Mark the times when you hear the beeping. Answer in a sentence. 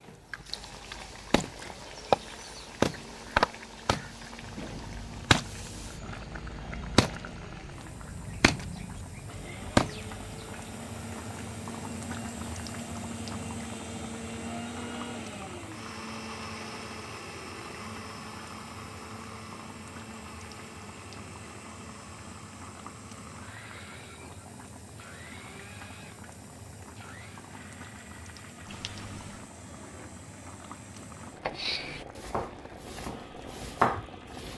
You can hear the beeping from 28.6 to 29.5 s.